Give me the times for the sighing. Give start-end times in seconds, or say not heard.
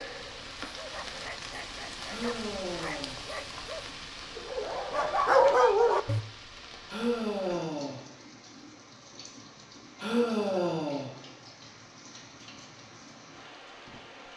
2.0-3.2, 6.8-8.0, 10.0-11.1.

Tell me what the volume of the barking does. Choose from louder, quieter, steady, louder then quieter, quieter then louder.
louder.